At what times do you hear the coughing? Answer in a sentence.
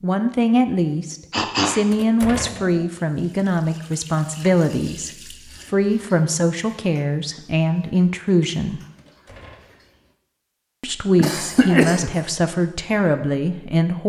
The coughing can be heard from 1.3 to 2.9 s and from 11.2 to 12.2 s.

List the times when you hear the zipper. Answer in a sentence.
The zipper can't be heard in this clip.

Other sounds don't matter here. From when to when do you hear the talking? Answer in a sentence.
You can hear the talking from 0.0 to 5.1 s, from 5.7 to 8.8 s and from 10.8 to 14.0 s.